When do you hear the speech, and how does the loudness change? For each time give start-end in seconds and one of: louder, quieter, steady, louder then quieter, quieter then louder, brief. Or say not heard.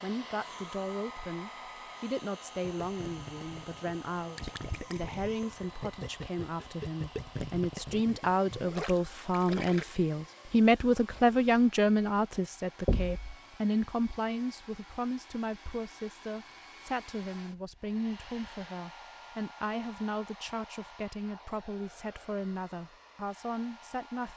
0.0-24.3 louder then quieter.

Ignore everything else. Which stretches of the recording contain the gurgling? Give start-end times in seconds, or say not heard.
2.6-9.8.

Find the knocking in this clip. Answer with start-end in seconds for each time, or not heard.
12.8-13.3.